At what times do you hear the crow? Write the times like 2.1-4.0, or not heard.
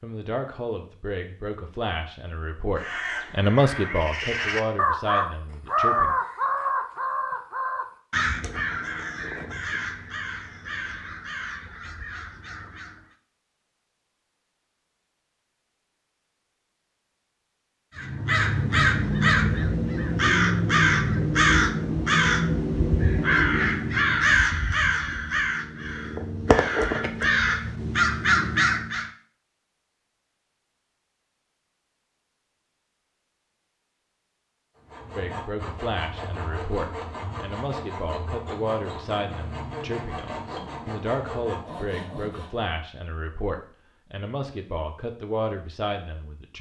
2.8-13.2, 17.9-29.1.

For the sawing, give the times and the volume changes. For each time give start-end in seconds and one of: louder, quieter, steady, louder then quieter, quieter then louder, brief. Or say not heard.
34.8-42.7 steady.